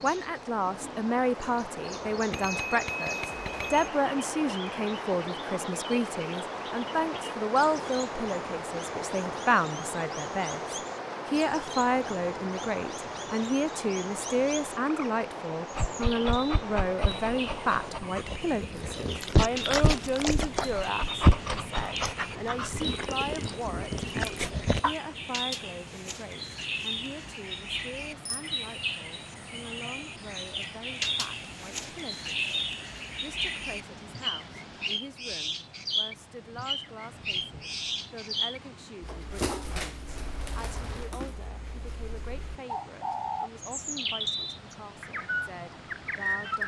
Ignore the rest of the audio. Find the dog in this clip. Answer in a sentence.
You can hear the dog from 15.8 to 24.9 s.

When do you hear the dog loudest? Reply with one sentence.
The loudest moment of the dog is at 21 seconds.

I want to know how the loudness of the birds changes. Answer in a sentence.
The loudness of the birds goes up.